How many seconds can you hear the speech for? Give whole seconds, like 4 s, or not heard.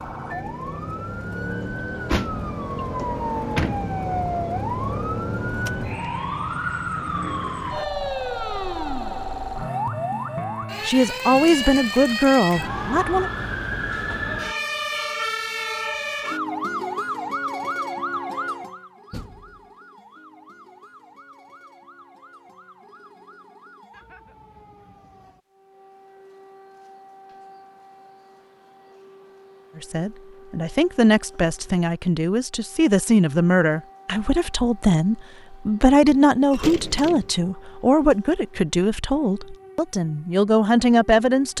14 s.